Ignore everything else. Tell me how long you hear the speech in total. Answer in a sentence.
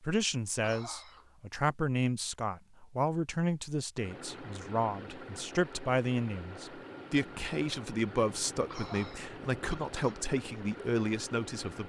The speech can be heard for 12 seconds in total.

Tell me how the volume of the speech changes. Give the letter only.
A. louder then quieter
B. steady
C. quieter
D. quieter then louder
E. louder
B.